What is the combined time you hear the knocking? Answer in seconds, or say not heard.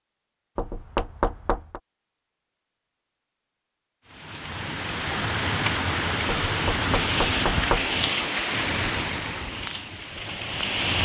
3 s.